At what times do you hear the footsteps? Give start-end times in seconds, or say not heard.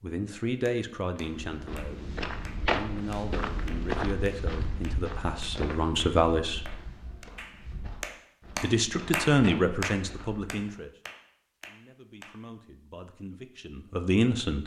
1.1-10.6.